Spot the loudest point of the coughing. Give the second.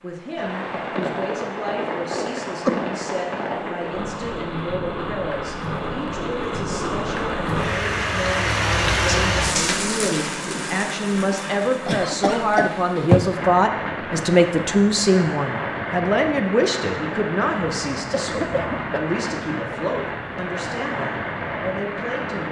13 s.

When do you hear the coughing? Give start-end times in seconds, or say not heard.
2.0-3.2, 11.8-13.3, 18.1-18.9.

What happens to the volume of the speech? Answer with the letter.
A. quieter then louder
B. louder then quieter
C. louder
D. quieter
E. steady
B.